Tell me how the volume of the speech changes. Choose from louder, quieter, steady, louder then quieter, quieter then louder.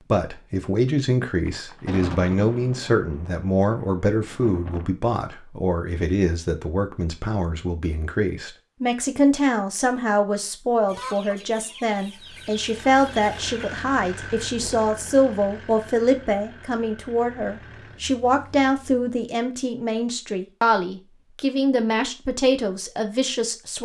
steady.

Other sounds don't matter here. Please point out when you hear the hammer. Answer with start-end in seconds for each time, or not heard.
not heard.